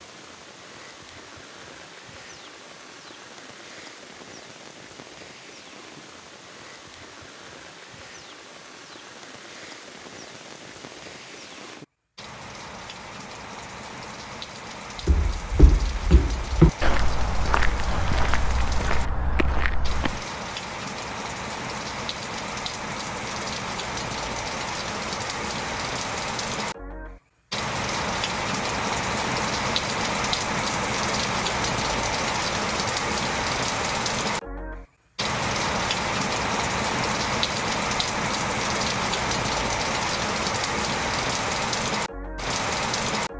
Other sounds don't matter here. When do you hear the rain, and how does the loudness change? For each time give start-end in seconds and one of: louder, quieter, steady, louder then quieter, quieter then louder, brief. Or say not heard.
0.0-43.3 louder.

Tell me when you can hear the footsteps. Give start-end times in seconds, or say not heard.
15.0-20.2.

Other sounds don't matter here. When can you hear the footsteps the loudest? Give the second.
17 s.